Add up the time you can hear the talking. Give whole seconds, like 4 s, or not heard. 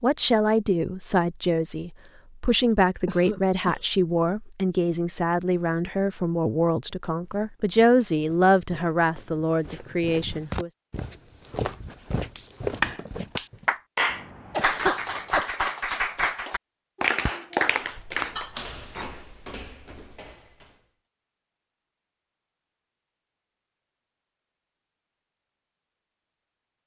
11 s.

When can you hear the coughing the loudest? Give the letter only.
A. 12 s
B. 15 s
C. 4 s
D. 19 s
B.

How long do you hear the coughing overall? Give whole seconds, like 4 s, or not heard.
3 s.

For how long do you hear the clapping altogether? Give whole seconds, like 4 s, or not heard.
6 s.